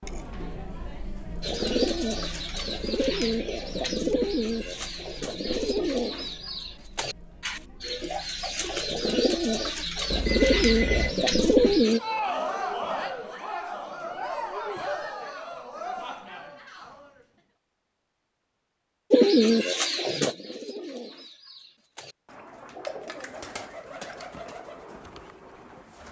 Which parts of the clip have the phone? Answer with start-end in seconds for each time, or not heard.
10.1-11.2.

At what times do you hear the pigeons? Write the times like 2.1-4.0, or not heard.
1.4-12.0, 19.1-26.0.